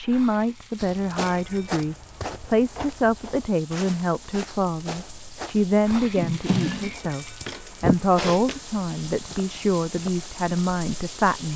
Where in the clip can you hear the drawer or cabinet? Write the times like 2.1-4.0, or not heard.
6.2-7.0.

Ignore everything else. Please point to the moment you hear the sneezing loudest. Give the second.
8 s.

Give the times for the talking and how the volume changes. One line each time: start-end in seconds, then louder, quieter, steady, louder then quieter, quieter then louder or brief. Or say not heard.
0.0-11.5 steady.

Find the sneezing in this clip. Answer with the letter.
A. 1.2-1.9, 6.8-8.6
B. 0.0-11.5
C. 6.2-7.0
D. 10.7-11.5
A.